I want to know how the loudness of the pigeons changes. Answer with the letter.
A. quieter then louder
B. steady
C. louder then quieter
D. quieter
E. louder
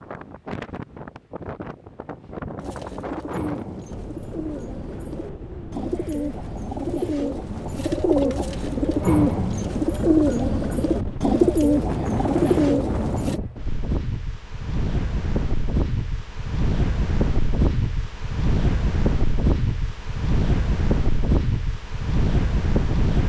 E.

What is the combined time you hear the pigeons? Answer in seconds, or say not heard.
11 s.